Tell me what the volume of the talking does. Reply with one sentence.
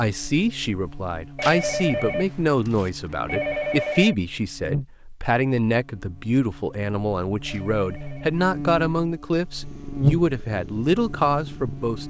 The volume of the talking stays about the same.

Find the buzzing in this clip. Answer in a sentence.
The buzzing can be heard from 0.0 to 12.0 s.